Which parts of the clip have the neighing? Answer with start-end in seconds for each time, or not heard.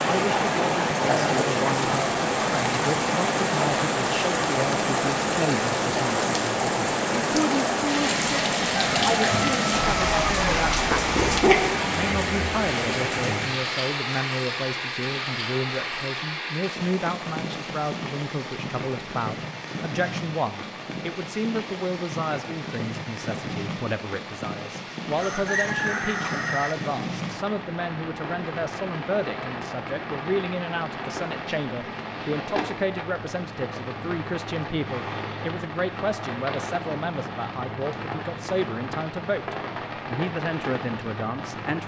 not heard.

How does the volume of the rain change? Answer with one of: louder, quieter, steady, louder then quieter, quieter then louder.
quieter.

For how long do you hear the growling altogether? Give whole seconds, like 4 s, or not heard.
2 s.